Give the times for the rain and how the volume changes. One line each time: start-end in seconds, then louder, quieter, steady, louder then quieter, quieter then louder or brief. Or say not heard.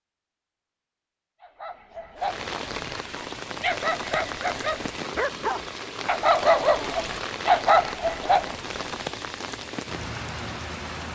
2.1-11.0 steady.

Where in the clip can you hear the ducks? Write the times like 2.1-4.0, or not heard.
not heard.